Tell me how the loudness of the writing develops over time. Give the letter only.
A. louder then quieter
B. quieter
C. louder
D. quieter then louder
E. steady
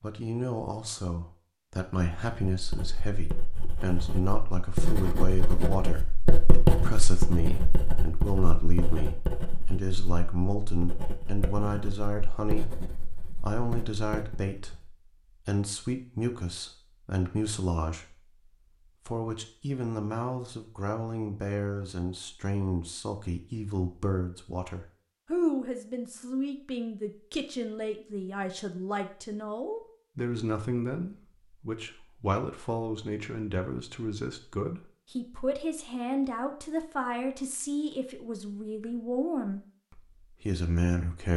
A.